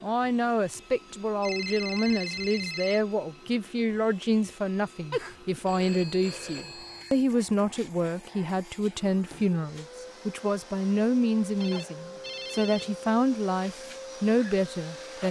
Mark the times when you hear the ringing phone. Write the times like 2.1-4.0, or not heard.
1.4-3.0, 5.1-7.2, 11.6-12.9.